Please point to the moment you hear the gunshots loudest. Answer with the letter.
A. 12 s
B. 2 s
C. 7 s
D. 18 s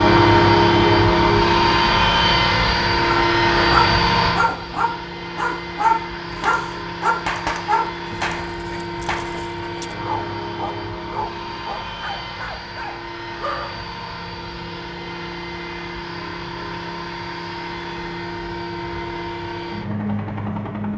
C.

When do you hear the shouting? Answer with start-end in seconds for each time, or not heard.
not heard.